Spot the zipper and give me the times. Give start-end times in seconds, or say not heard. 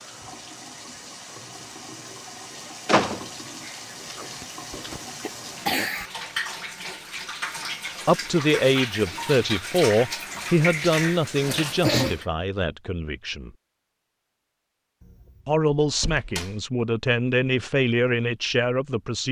not heard.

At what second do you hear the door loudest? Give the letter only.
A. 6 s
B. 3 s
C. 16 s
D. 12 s
B.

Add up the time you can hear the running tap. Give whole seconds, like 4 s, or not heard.
12 s.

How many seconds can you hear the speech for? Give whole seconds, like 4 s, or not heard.
9 s.